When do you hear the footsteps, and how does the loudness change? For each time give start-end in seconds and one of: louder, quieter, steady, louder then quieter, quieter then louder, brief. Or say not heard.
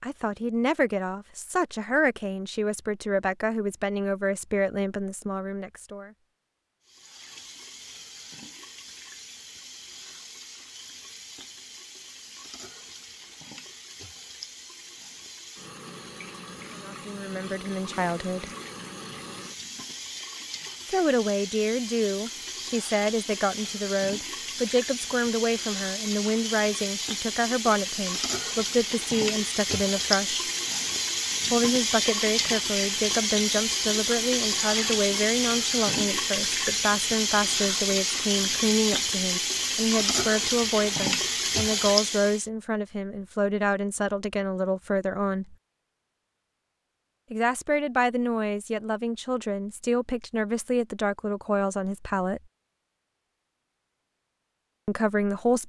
not heard.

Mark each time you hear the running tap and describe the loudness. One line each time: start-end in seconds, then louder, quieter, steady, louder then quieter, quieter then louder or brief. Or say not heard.
6.8-42.5 louder.